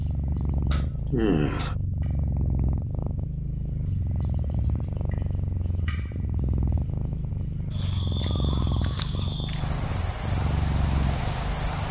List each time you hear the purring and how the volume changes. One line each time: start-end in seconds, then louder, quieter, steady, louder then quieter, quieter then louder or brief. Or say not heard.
0.0-11.8 steady.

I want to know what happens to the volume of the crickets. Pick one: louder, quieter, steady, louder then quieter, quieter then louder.
louder then quieter.